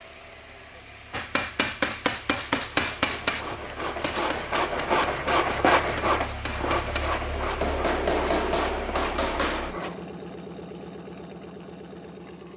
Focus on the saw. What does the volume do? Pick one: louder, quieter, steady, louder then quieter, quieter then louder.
louder then quieter.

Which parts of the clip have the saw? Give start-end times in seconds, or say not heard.
2.8-10.1.